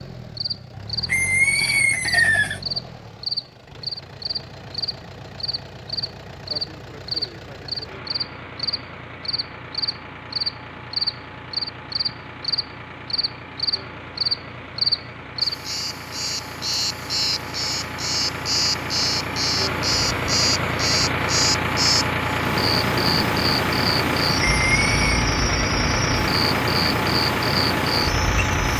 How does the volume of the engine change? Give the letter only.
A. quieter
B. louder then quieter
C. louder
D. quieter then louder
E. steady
C.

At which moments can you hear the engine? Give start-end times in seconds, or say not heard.
0.0-28.7.